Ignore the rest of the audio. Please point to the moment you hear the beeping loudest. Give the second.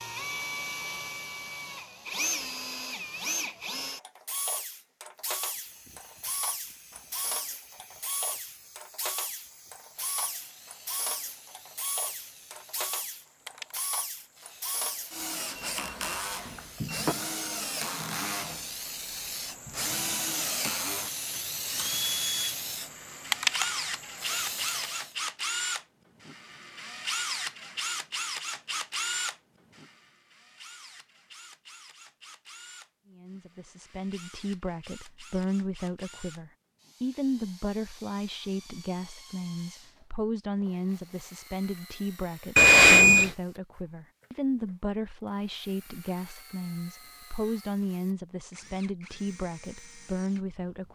43 s.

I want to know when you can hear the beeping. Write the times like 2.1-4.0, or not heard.
15.6-17.1, 42.5-43.3.